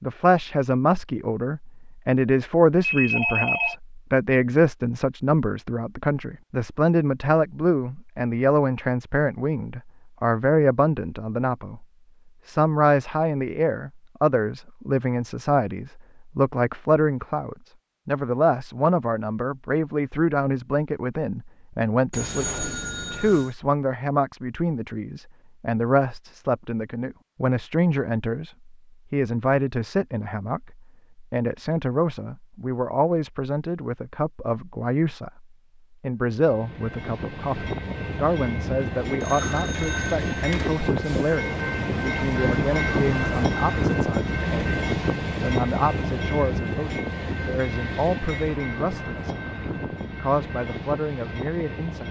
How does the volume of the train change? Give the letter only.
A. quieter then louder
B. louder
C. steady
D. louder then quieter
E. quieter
D.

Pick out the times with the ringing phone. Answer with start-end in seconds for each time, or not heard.
2.8-3.8, 22.1-23.5, 39.2-40.8.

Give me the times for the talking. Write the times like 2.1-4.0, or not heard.
0.0-11.8, 12.4-52.0.